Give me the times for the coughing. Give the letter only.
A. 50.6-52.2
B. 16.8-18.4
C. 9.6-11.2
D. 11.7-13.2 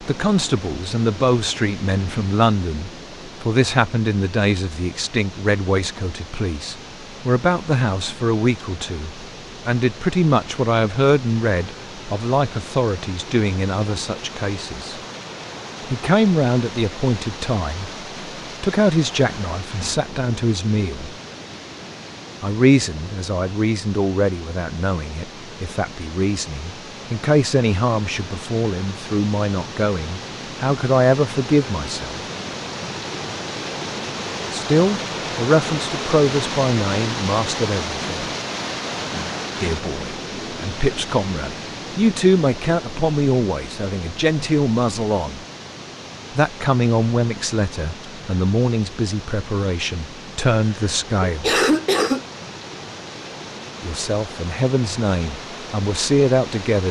A.